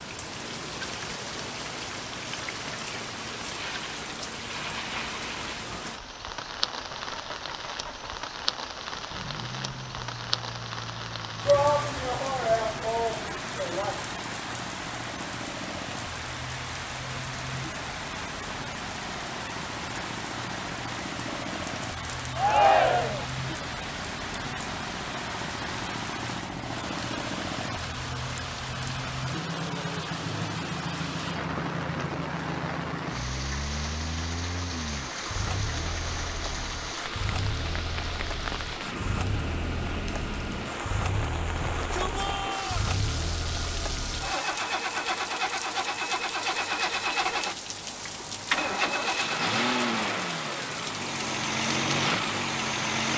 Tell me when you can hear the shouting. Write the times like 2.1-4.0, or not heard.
11.4-14.1, 22.4-23.2, 41.5-42.9.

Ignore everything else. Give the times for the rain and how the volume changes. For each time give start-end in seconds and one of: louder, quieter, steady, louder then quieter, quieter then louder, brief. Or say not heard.
0.0-53.0 steady.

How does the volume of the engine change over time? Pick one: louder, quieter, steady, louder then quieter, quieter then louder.
louder.